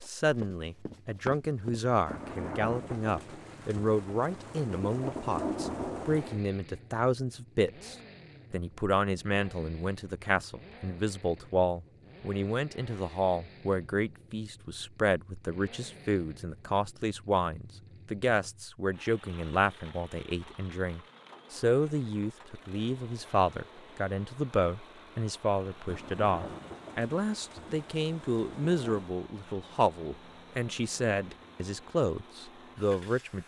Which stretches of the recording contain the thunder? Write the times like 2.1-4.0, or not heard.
2.0-6.5, 25.9-29.1.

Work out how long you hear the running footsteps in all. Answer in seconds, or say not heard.
2 s.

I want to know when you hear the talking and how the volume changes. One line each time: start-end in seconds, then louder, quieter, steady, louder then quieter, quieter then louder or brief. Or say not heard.
0.1-33.4 steady.